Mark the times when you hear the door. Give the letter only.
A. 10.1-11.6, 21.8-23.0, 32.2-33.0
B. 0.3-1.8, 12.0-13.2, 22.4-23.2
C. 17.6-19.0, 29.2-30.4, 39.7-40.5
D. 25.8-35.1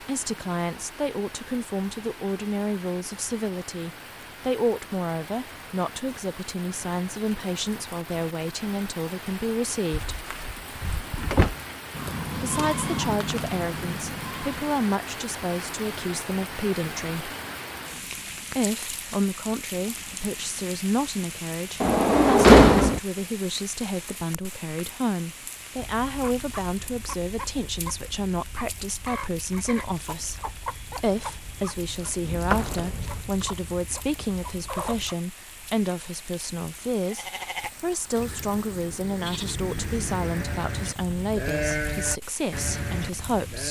A.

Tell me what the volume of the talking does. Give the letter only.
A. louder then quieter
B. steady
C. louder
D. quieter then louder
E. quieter
B.